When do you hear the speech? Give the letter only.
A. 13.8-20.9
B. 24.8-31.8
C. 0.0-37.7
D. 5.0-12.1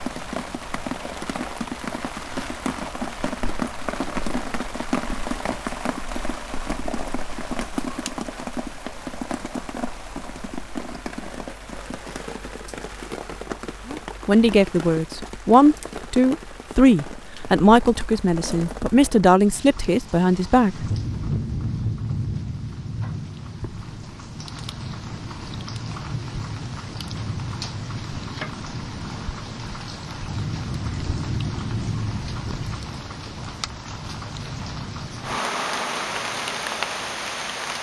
A.